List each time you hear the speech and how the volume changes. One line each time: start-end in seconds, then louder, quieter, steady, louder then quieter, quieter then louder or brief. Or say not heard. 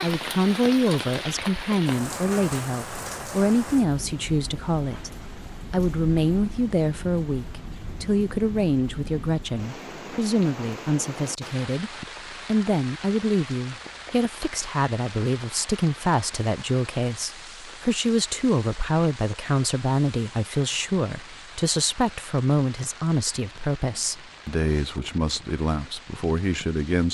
0.0-27.1 steady.